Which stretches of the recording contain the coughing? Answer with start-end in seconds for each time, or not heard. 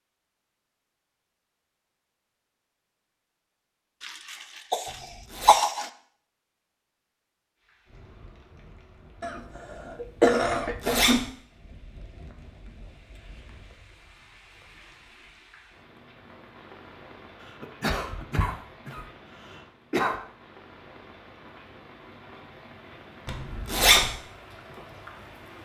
4.0-5.8, 9.2-11.2, 17.4-20.1.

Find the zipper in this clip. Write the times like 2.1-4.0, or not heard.
4.8-5.5, 10.4-11.2, 23.2-24.1.